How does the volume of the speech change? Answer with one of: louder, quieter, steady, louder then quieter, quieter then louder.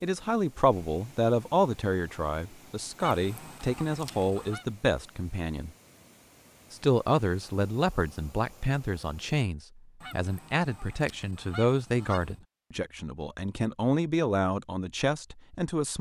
steady.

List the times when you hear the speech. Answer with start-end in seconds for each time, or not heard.
0.0-5.7, 6.7-15.9.